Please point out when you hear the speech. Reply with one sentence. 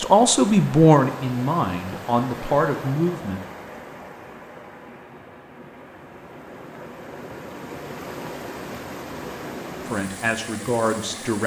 You can hear the speech from 0.0 to 3.4 s and from 9.8 to 11.4 s.